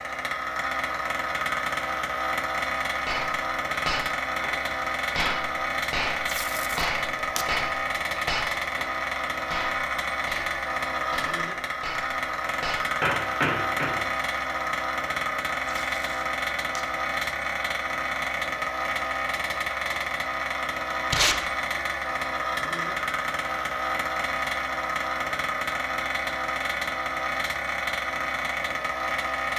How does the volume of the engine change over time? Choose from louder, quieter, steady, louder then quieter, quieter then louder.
steady.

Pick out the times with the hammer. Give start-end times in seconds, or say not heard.
3.0-13.9.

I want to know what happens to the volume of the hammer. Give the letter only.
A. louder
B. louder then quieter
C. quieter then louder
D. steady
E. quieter
C.